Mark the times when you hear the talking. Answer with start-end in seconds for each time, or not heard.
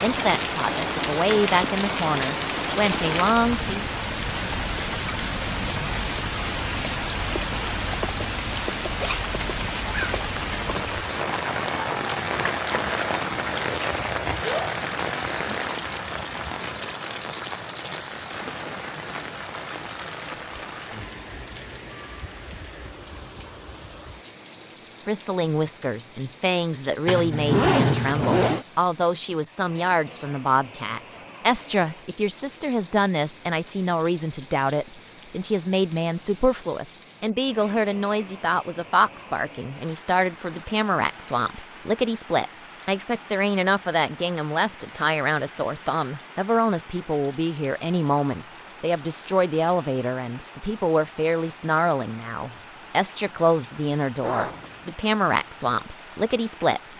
0.0-3.7, 25.1-56.8.